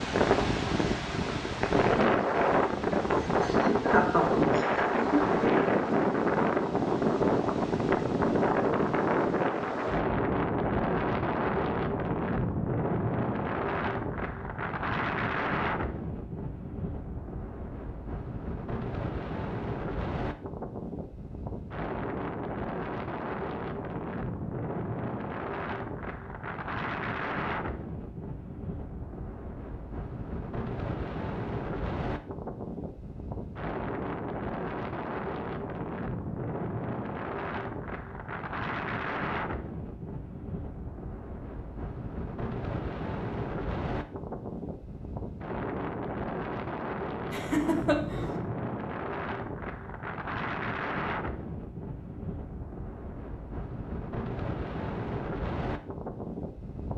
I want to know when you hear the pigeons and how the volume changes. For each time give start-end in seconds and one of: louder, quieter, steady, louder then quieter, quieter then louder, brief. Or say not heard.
not heard.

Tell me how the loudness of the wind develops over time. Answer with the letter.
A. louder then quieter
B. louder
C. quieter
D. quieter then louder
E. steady
C.